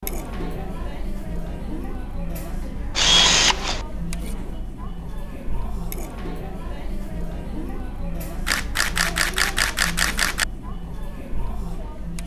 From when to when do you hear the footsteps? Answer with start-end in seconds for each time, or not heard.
not heard.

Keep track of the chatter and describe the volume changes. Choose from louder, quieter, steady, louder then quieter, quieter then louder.
steady.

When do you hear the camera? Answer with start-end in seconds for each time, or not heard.
3.0-3.9, 8.4-10.4.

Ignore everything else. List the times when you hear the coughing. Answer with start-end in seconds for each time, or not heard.
not heard.